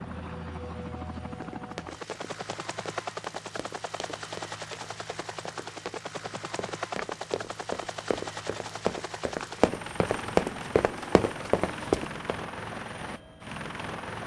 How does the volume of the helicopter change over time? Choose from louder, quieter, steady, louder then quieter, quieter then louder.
steady.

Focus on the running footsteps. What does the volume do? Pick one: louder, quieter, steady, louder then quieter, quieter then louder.
louder.